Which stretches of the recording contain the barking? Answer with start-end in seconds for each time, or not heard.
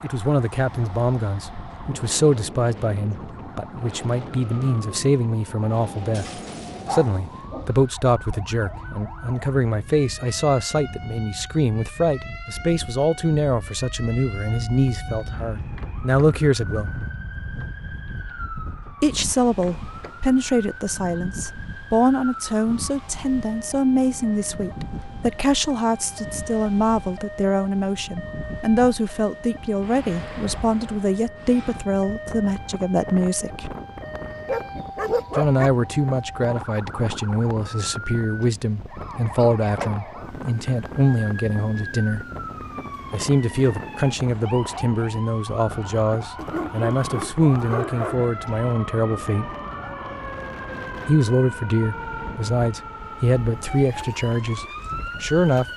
6.1-7.8, 34.5-35.7, 46.4-48.2.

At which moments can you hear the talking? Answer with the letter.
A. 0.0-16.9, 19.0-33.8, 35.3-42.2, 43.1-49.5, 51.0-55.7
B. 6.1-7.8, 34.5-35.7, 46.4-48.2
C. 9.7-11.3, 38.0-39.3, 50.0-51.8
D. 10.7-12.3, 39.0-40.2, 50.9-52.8
A.